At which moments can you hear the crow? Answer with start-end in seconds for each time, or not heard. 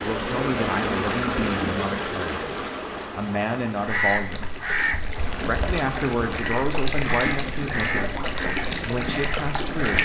3.9-9.9.